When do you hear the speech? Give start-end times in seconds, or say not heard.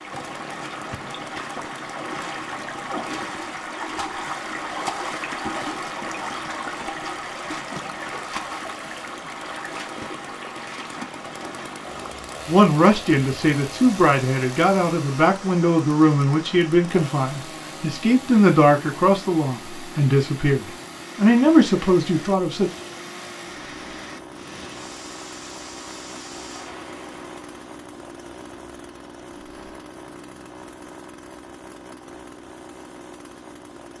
12.4-22.7.